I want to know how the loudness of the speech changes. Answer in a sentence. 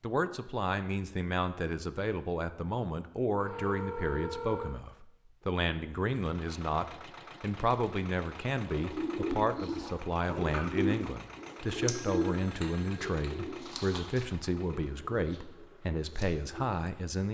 The volume of the speech stays about the same.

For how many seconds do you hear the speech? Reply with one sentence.
You can hear the speech for 17 seconds altogether.